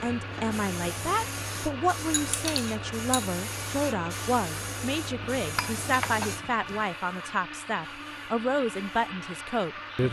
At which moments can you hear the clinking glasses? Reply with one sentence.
You can hear the clinking glasses from 2.1 to 3.2 s and from 5.3 to 6.8 s.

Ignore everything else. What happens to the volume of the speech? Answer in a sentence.
The loudness of the speech stays about the same.